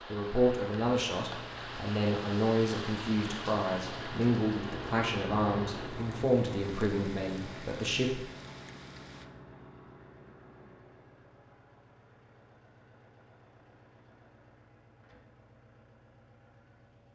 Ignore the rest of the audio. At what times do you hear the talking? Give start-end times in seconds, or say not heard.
0.1-8.2.